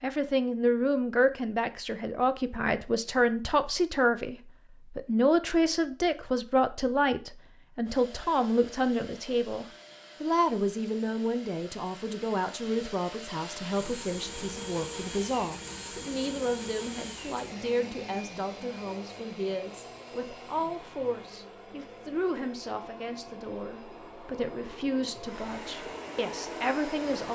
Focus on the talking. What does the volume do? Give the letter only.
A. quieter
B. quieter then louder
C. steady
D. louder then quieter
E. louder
A.